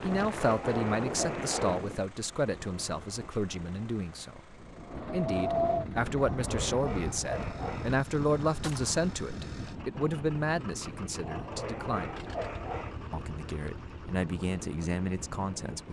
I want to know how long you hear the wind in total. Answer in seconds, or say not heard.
16 s.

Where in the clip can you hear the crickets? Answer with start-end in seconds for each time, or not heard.
not heard.